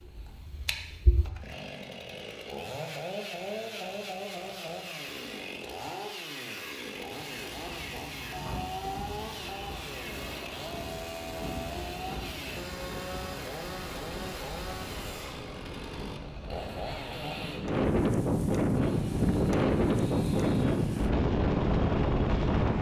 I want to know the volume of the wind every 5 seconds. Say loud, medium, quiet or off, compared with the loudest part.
off, quiet, quiet, loud, loud.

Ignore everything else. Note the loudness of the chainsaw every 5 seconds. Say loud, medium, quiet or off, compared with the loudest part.
loud, loud, loud, loud, medium.